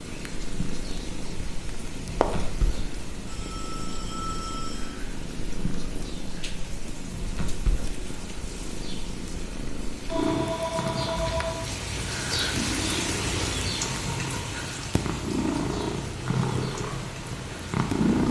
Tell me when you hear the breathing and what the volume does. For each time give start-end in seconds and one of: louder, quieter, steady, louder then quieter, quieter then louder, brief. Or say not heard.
not heard.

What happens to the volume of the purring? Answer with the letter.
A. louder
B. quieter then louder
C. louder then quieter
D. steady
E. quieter
A.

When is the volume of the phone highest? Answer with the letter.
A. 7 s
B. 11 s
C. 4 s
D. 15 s
B.